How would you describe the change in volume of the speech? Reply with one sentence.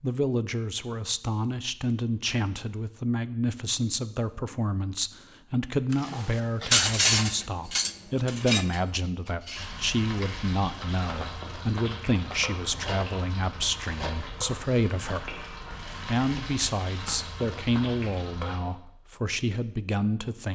The loudness of the speech stays about the same.